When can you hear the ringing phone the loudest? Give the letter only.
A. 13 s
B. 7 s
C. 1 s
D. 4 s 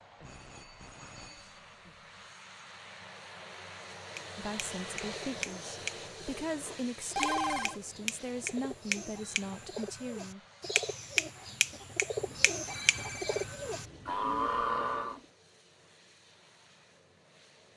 B.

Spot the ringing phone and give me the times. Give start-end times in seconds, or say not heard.
0.2-1.9, 6.7-7.8, 12.2-14.2.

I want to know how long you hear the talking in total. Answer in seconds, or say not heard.
6 s.